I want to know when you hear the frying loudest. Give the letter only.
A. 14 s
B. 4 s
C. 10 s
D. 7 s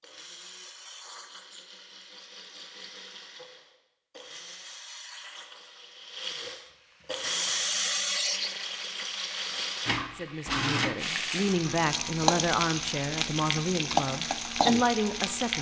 A.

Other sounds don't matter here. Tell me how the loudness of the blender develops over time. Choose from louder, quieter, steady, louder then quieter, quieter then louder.
louder then quieter.